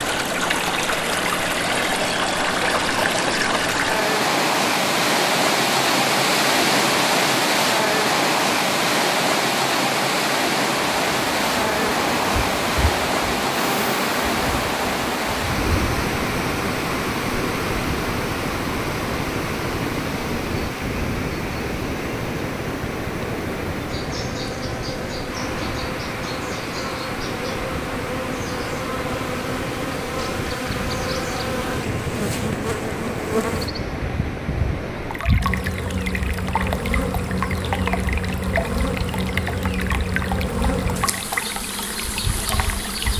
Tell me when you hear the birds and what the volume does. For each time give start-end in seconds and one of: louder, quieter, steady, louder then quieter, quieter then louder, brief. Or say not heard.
not heard.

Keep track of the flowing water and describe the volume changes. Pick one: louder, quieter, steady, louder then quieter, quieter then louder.
quieter.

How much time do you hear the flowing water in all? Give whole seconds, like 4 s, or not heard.
43 s.